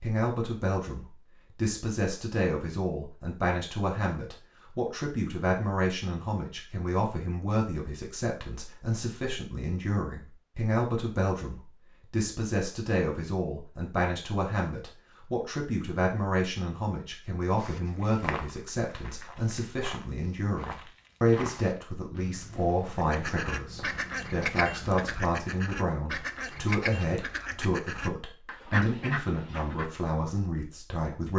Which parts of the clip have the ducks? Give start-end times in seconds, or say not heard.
22.9-29.9.